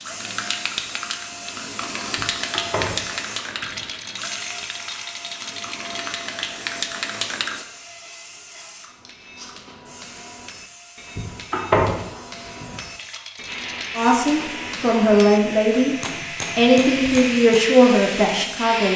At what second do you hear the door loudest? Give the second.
12 s.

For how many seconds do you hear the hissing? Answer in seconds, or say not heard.
13 s.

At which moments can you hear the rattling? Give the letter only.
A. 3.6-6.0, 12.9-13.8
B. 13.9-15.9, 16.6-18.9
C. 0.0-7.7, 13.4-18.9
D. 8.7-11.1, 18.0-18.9
A.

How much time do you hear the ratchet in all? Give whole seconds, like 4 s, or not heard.
not heard.